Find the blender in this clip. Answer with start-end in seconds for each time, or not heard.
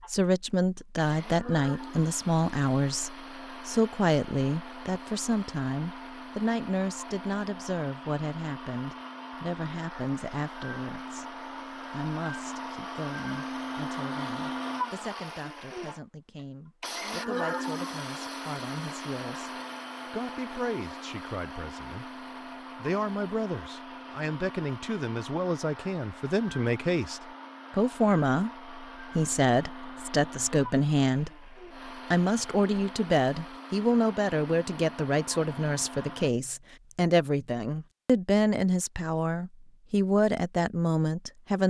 0.0-36.3.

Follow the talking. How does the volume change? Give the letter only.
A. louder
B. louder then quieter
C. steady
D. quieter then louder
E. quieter
D.